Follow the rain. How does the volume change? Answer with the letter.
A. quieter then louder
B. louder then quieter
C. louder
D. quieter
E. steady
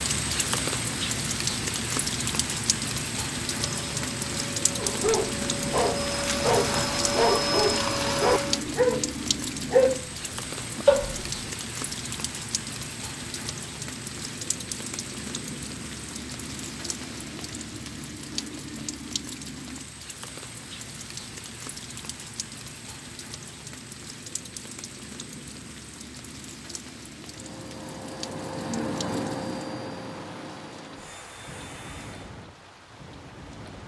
D.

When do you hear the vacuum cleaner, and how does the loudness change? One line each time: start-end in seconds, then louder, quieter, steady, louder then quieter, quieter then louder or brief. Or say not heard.
3.5-8.7 louder
27.2-32.3 louder then quieter.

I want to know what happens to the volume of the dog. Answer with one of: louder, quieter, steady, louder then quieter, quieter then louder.
louder.